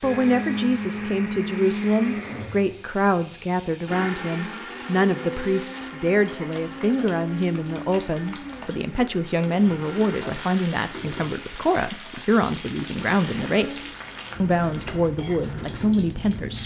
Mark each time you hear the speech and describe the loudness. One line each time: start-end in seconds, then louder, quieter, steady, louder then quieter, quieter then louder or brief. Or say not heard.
0.0-16.6 steady.